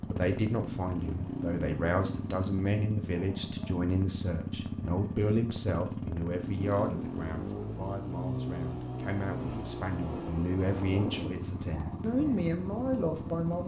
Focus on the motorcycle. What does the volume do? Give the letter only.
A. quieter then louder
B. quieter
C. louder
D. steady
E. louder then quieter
D.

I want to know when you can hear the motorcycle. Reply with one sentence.
You can hear the motorcycle from 0.0 to 13.6 s.